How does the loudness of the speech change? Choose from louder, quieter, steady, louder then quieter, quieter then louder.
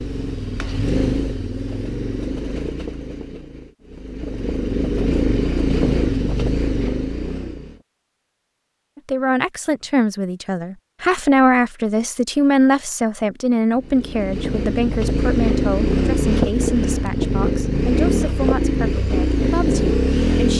quieter.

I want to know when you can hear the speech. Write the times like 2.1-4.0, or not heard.
8.9-20.5.